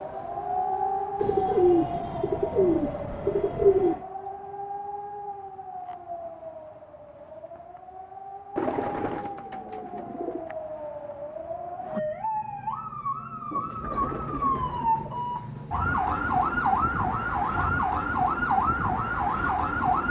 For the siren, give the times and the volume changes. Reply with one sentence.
The siren can be heard from 0.0 to 20.0 s, getting quieter then louder.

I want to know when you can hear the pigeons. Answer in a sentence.
The pigeons can be heard from 1.1 to 4.0 s, from 8.6 to 10.5 s and from 13.5 to 15.2 s.